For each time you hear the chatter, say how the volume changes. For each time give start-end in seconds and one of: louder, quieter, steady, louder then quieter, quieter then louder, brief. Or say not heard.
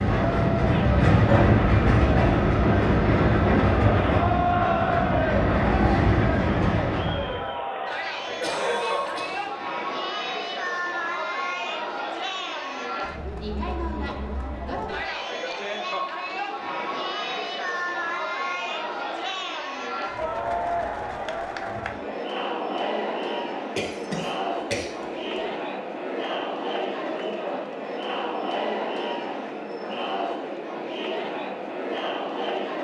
0.0-32.7 steady.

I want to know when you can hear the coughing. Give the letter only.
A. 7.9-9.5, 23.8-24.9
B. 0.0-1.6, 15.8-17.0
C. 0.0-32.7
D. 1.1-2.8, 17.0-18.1
A.